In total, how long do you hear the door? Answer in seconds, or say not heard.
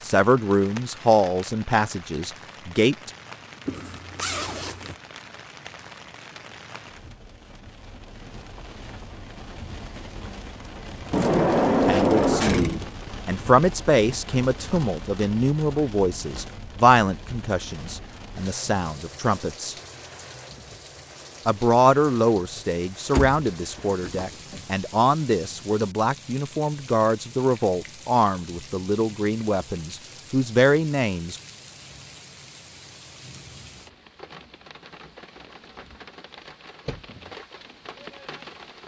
3 s.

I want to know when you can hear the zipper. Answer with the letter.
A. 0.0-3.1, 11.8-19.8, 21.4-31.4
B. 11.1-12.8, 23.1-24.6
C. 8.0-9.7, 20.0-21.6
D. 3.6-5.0
D.